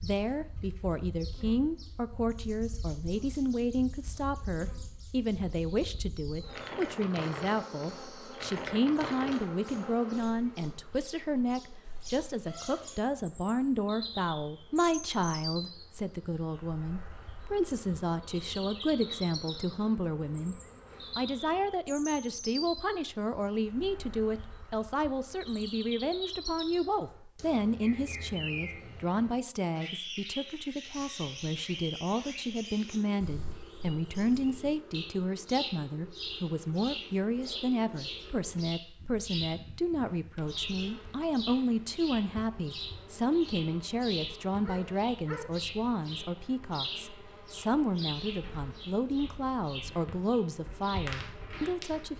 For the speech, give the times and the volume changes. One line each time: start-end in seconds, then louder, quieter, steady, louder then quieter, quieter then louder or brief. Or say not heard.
0.0-52.1 steady.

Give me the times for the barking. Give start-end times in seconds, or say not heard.
44.6-45.5.